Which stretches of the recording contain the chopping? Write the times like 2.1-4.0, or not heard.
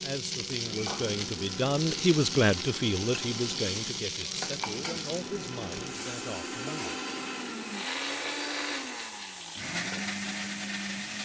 not heard.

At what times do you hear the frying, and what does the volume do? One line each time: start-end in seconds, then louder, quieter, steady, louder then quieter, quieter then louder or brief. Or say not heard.
0.0-11.2 quieter.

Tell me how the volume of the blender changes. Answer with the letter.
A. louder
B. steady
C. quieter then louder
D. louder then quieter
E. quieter
A.